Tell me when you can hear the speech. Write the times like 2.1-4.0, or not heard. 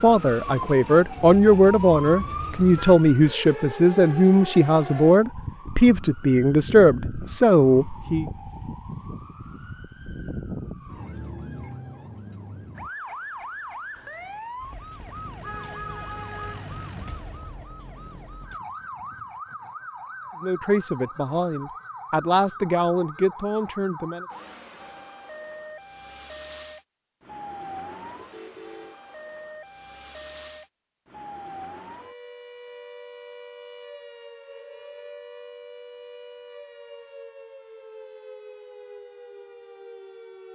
0.0-8.2, 20.4-24.2.